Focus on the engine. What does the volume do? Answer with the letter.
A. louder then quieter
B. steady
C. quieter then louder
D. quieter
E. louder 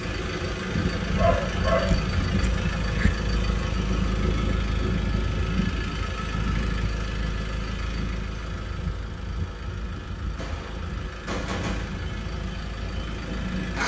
D.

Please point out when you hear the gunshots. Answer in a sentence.
The gunshots can be heard from 10.3 to 12.1 s.